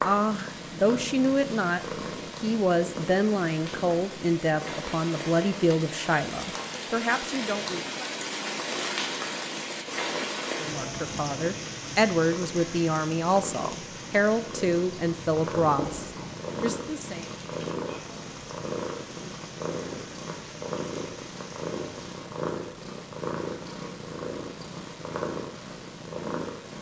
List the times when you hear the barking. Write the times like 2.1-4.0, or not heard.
not heard.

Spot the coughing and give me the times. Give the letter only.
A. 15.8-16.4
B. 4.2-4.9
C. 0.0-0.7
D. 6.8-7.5
A.